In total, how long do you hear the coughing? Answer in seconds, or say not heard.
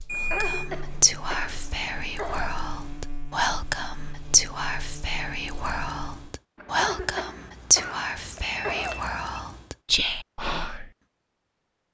5 s.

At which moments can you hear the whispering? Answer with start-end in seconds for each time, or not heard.
0.3-10.9.